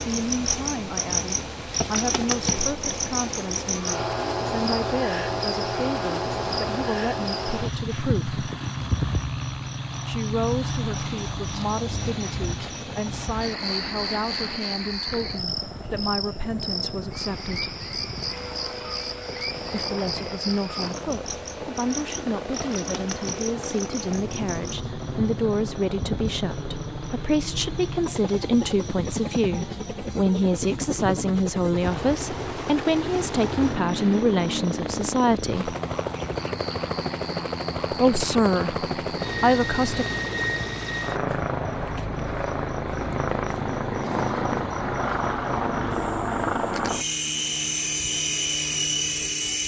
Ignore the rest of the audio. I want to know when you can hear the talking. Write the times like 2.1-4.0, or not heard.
0.0-8.3, 10.1-17.8, 19.7-35.8, 37.9-40.0.